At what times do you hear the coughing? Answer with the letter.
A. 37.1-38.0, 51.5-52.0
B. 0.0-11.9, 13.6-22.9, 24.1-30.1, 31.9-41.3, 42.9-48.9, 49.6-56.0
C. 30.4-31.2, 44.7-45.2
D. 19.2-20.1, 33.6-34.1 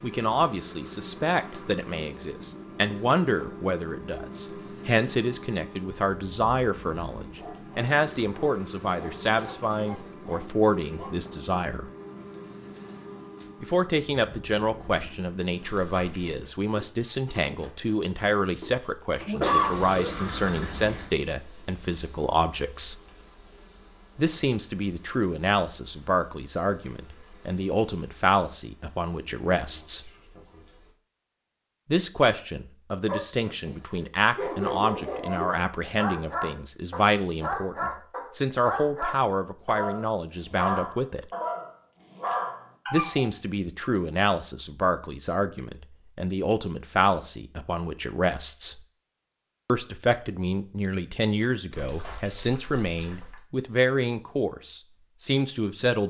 D.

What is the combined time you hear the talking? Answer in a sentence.
The talking can be heard for 49 seconds in total.